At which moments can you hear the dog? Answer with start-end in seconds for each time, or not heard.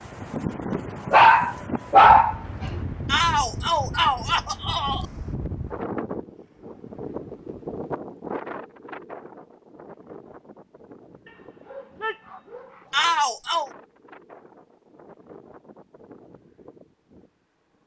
1.1-2.8, 11.2-13.2.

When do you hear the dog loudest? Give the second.
2 s.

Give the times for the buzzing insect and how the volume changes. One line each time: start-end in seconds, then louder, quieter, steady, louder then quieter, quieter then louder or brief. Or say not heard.
not heard.